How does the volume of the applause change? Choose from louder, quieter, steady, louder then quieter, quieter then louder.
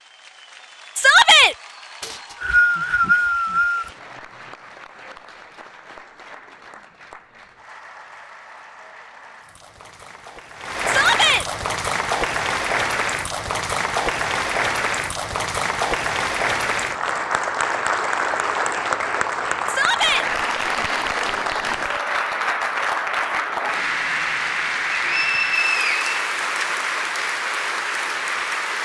louder.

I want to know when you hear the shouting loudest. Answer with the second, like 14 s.
1 s.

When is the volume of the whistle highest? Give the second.
3 s.